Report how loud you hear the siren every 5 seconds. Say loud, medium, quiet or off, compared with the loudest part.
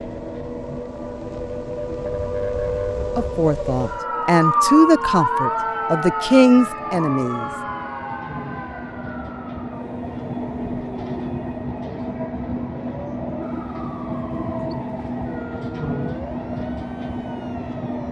loud, loud, quiet, quiet.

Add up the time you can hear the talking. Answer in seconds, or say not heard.
4 s.